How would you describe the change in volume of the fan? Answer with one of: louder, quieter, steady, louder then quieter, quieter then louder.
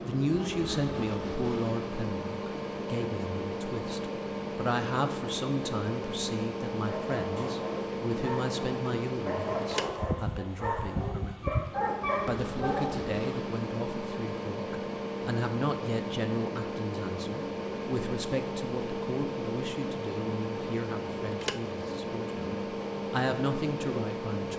steady.